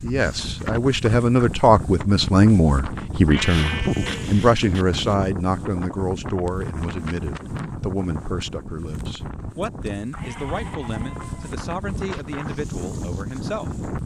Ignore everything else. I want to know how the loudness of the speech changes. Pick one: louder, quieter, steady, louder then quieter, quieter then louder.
quieter.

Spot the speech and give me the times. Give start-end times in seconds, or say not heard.
0.0-13.8.